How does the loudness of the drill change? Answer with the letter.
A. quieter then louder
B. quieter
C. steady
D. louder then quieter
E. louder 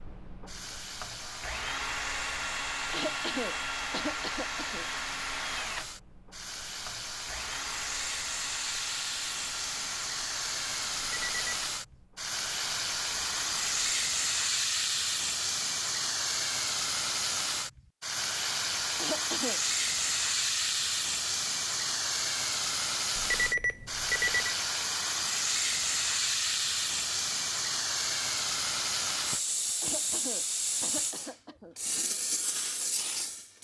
B.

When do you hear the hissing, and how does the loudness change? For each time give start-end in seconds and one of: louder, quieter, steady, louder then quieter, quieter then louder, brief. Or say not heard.
0.5-33.6 louder.